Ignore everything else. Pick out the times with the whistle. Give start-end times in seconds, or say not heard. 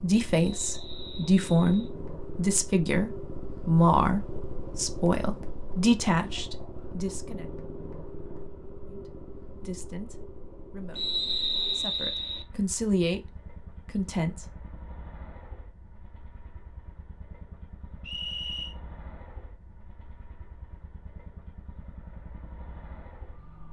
0.4-1.9, 10.9-12.4, 18.0-18.8.